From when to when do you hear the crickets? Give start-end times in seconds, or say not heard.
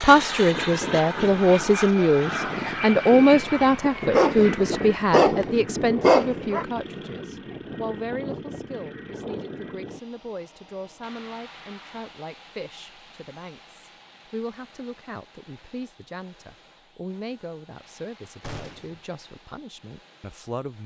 not heard.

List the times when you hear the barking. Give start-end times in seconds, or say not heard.
3.2-6.7.